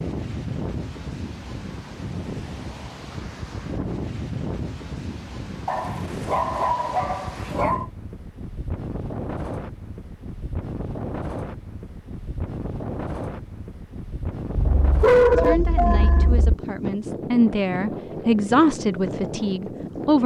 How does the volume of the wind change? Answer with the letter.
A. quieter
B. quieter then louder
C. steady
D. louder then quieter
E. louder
C.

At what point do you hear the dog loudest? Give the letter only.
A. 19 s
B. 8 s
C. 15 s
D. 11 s
C.